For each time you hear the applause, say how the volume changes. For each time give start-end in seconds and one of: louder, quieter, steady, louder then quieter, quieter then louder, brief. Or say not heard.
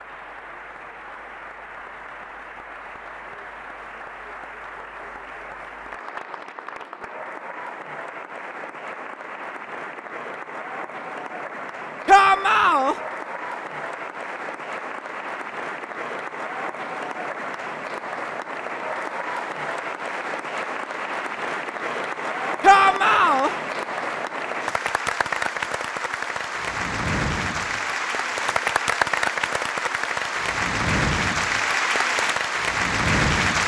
0.0-33.6 louder.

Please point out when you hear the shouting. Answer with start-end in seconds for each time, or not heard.
12.1-12.9, 22.6-23.5.